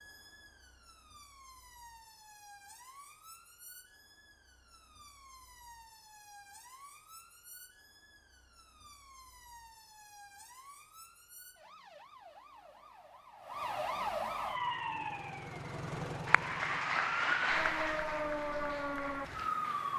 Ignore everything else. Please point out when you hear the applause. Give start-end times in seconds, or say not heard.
16.2-19.9.